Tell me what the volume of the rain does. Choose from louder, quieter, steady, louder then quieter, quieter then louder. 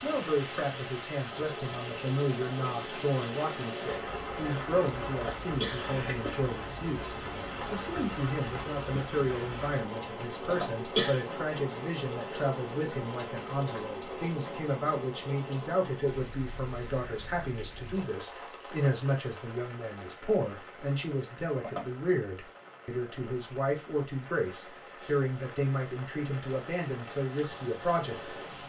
quieter.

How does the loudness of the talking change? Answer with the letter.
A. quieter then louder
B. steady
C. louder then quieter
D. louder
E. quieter
B.